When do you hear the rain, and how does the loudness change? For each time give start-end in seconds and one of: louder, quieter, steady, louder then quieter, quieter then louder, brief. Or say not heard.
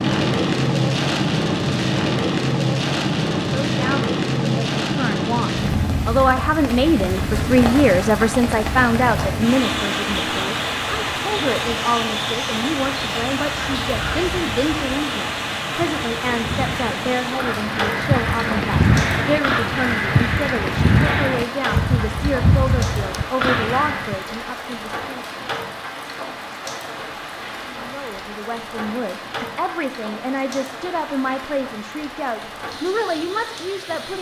0.0-34.1 quieter.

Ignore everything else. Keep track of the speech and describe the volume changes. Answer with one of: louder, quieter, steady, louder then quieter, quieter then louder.
quieter.